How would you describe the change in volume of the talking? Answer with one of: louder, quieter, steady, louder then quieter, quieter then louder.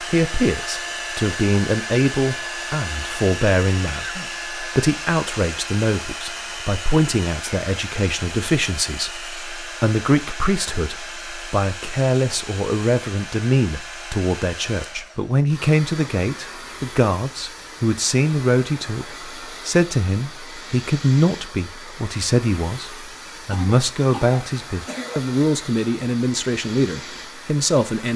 steady.